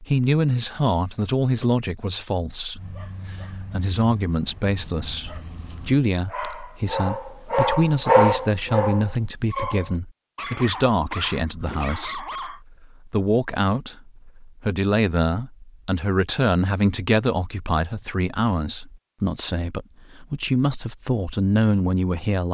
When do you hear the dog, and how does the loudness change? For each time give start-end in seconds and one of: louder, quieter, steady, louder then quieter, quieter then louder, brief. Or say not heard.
2.8-12.6 louder then quieter.